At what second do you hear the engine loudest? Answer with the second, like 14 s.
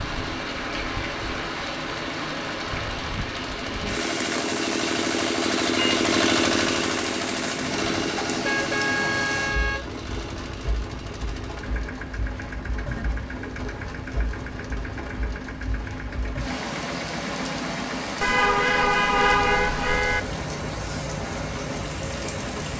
6 s.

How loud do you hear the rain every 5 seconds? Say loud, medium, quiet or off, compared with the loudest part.
loud, loud, medium, loud, loud.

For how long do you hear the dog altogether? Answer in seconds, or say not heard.
not heard.